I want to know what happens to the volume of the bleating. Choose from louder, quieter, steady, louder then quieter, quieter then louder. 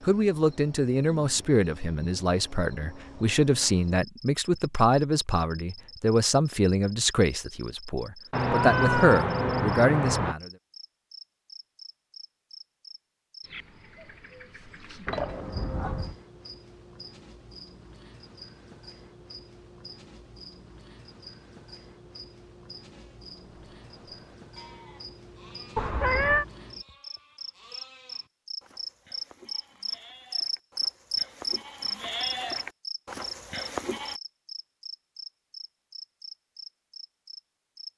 louder.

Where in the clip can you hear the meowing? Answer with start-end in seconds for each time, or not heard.
8.3-10.3, 15.1-16.1, 25.8-26.4.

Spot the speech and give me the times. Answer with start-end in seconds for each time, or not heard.
0.0-10.5.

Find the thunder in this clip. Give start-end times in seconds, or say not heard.
not heard.